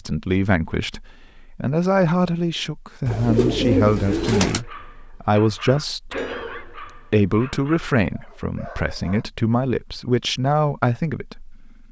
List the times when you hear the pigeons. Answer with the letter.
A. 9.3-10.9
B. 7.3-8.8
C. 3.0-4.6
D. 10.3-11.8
C.